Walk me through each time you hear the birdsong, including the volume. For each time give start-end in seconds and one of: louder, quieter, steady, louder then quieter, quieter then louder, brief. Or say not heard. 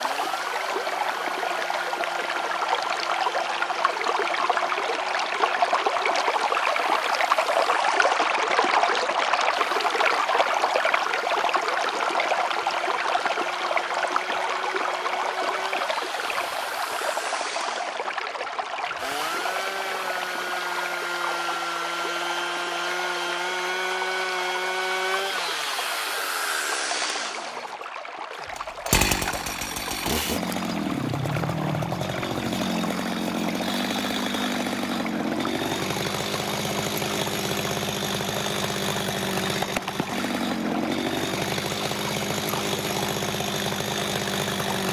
not heard.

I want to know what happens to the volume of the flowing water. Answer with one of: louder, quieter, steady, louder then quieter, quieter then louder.
quieter.